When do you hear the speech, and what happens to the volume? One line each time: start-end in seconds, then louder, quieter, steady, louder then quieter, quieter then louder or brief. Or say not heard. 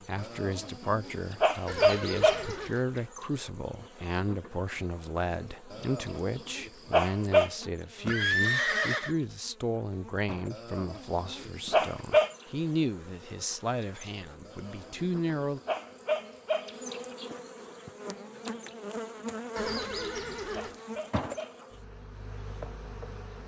0.1-15.6 steady.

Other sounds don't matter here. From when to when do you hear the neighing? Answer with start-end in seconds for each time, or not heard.
1.6-2.8, 8.1-9.2, 19.6-20.8.